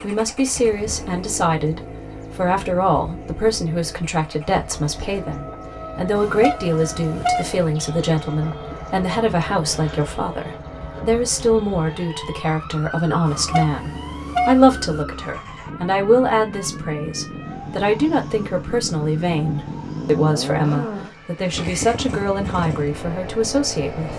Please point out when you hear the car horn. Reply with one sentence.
You can hear the car horn from 6.2 to 7.7 s and from 13.2 to 15.1 s.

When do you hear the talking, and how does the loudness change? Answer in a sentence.
You can hear the talking from 0.0 to 24.1 s, at a steady volume.